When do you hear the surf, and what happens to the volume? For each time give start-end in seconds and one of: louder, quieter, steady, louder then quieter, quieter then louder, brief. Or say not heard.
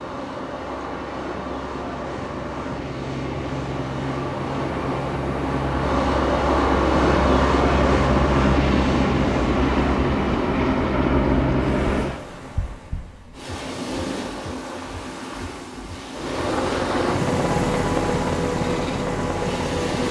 0.0-20.0 louder then quieter.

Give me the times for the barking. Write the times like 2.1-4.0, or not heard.
not heard.